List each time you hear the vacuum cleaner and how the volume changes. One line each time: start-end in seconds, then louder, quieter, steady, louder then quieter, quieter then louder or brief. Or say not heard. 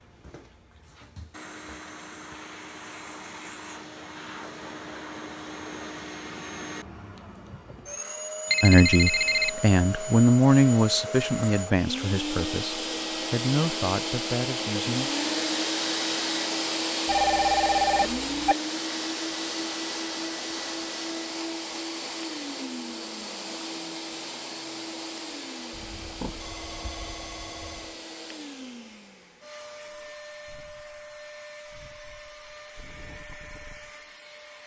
0.0-34.6 louder then quieter.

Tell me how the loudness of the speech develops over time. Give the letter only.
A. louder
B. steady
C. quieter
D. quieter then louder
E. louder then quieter
E.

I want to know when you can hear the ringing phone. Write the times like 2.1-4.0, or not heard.
8.5-9.6, 17.1-18.6, 25.7-27.9.